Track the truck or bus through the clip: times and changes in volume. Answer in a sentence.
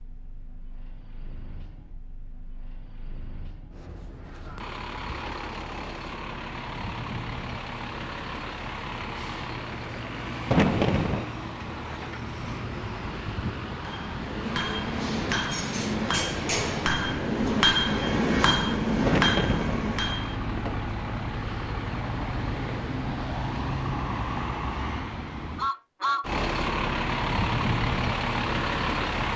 The truck or bus can be heard from 0.0 to 29.3 s, getting louder.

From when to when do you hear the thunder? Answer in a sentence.
You can hear the thunder from 10.5 to 11.2 s and from 19.1 to 19.8 s.